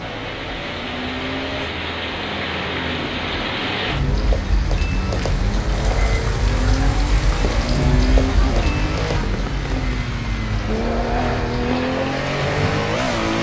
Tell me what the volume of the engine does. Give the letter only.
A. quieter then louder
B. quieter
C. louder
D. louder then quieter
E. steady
C.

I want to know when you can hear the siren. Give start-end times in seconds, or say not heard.
not heard.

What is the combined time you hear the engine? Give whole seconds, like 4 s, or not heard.
13 s.